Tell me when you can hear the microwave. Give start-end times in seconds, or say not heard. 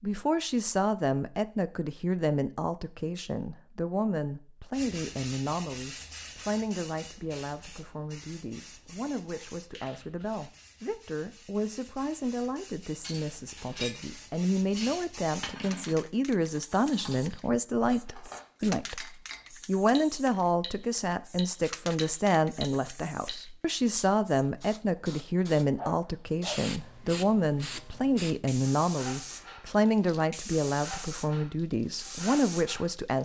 not heard.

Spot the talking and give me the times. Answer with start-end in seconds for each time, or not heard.
0.0-33.2.